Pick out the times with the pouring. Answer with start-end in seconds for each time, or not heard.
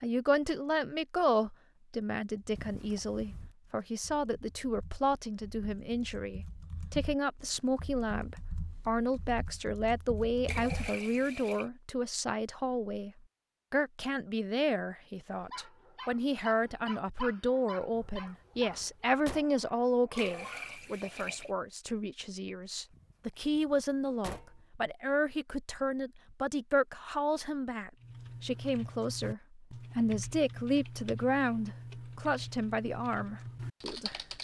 10.4-11.7, 20.1-21.5.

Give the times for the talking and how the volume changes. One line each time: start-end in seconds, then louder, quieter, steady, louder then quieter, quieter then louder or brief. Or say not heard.
0.0-13.1 steady
13.7-34.2 steady.